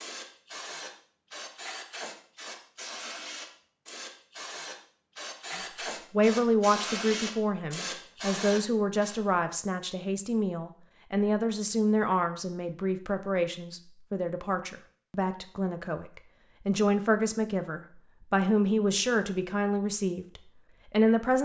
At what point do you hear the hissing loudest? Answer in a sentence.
The volume of the hissing peaks at 7 seconds.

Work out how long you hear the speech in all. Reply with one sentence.
The speech can be heard for 16 seconds in total.